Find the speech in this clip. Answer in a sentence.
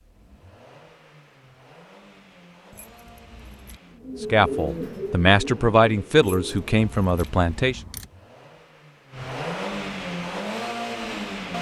The speech can be heard from 4.3 to 7.8 s.